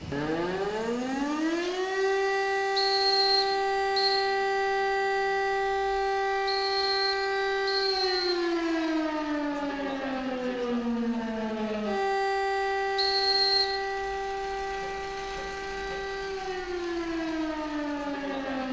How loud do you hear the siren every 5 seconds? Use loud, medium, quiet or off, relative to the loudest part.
loud, loud, loud, medium.